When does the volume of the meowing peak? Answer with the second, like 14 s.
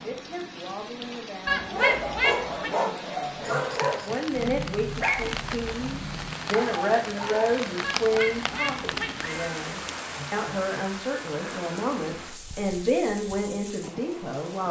2 s.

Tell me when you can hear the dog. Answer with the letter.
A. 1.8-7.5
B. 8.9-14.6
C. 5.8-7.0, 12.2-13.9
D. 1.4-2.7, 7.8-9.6
A.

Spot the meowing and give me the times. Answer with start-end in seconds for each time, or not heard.
1.4-2.7, 7.8-9.6.